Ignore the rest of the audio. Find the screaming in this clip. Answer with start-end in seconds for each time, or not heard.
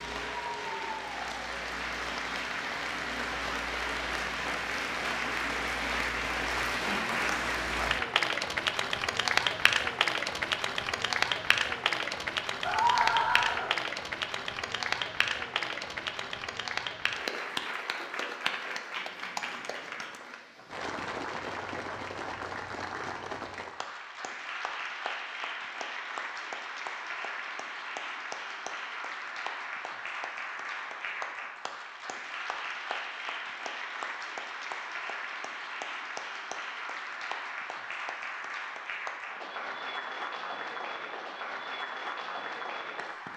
12.6-13.7.